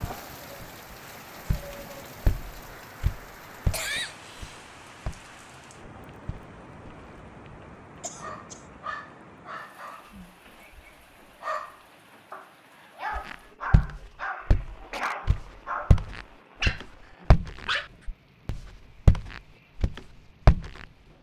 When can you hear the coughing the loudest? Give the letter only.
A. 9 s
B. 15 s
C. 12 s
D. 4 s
D.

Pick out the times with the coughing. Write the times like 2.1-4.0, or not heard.
3.7-4.6, 8.0-8.6, 14.3-15.4.